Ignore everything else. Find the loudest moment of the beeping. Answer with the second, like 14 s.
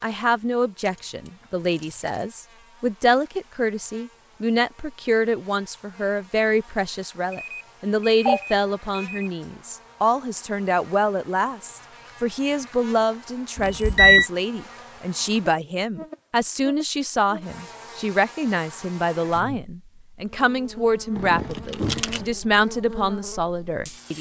14 s.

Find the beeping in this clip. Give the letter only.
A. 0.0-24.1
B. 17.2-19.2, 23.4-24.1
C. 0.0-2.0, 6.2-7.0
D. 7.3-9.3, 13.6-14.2
D.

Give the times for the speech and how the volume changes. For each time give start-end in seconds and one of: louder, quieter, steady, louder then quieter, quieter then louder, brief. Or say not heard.
0.0-24.1 steady.